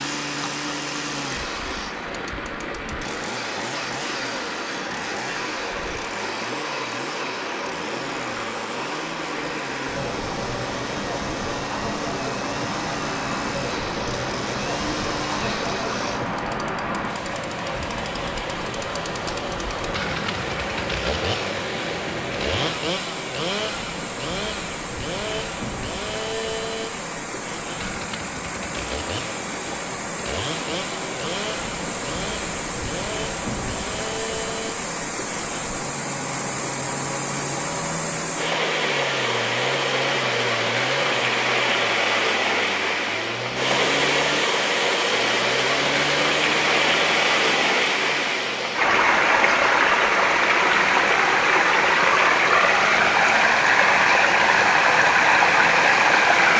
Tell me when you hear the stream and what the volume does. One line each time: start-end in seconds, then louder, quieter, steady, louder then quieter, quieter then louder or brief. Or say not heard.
0.0-56.5 louder.